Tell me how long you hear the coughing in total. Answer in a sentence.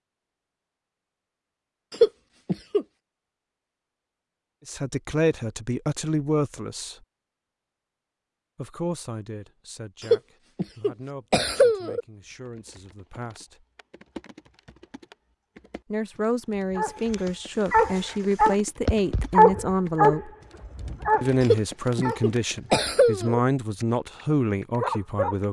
You can hear the coughing for 5 seconds altogether.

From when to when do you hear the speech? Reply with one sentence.
The speech can be heard from 4.7 to 7.0 s, from 8.6 to 13.7 s, from 15.9 to 20.3 s and from 21.2 to 25.4 s.